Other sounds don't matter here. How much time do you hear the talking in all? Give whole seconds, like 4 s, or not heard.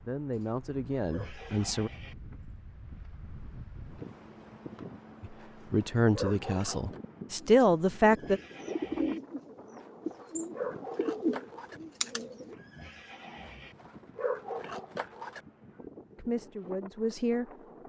7 s.